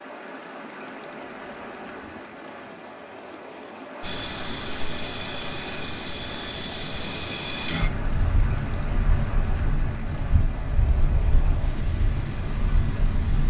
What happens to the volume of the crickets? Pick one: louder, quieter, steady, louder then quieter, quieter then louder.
quieter.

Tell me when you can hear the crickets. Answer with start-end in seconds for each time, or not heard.
4.0-13.4.